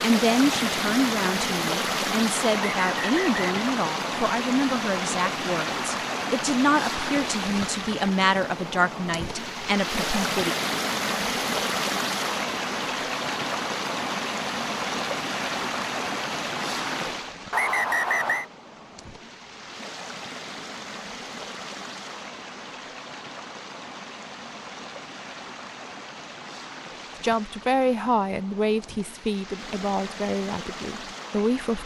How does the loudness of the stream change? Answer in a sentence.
The volume of the stream goes down.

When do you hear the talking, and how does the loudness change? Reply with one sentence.
The talking can be heard from 0.0 to 10.6 s, at a steady volume; and from 27.2 to 31.8 s, getting quieter.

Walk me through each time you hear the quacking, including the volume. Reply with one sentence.
You can't hear the quacking here.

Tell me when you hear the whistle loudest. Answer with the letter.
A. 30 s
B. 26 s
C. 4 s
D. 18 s
D.